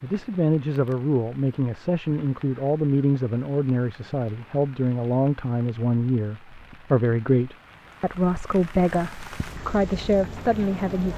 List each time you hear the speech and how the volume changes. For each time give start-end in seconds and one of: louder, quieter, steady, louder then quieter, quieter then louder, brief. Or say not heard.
0.0-11.1 steady.